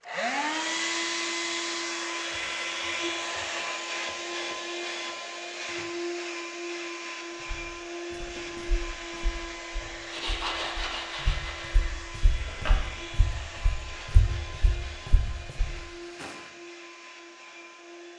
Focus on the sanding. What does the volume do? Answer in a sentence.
The loudness of the sanding goes down.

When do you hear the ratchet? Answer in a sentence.
You can't hear the ratchet here.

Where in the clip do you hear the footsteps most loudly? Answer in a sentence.
The loudest moment of the footsteps is at 14 seconds.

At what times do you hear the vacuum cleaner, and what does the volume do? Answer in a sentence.
The vacuum cleaner can be heard from 0.0 to 18.1 s, getting quieter.